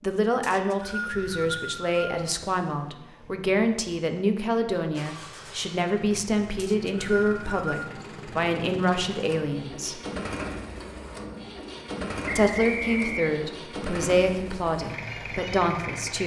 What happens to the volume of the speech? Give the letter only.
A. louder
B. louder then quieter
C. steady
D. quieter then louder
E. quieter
C.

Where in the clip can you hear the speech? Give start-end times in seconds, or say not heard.
0.0-10.0, 12.3-16.2.